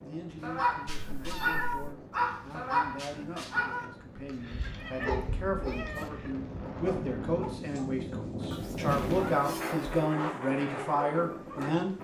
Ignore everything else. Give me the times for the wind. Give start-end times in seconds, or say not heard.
0.0-11.9.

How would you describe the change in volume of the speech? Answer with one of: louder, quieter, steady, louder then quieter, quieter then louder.
louder.